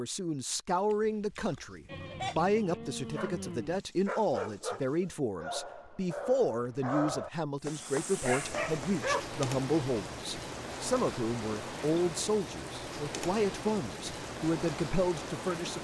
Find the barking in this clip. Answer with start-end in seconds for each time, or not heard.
3.0-9.2.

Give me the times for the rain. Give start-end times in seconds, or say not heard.
7.6-15.7.